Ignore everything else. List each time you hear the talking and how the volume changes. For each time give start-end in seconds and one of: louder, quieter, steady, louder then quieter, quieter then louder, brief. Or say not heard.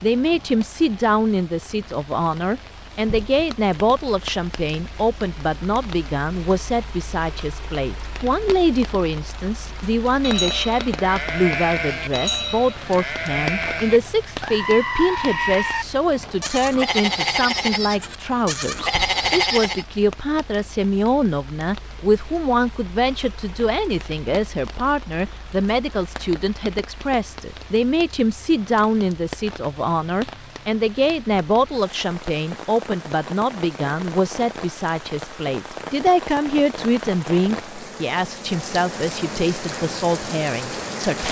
0.0-41.2 steady.